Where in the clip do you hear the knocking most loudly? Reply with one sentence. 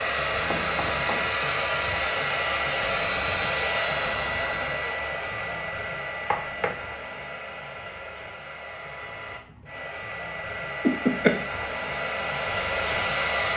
The volume of the knocking peaks at 11 seconds.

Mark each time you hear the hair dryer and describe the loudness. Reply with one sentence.
The hair dryer can be heard from 0.0 to 13.5 s, getting quieter then louder.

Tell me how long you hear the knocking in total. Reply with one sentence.
The knocking can be heard for 2 seconds in total.